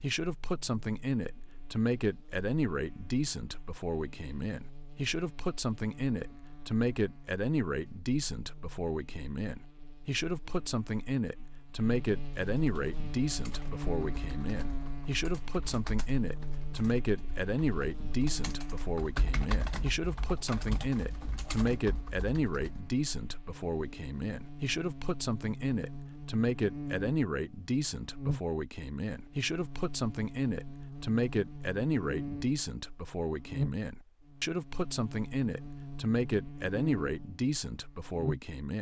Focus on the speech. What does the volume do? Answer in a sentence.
The loudness of the speech stays about the same.